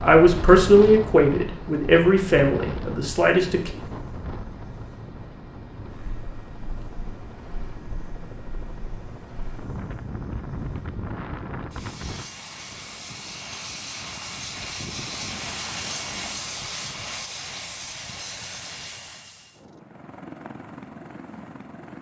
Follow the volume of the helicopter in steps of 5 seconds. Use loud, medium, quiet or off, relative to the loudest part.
medium, medium, loud, loud, medium.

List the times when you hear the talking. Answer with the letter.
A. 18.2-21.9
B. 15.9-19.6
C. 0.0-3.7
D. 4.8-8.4
C.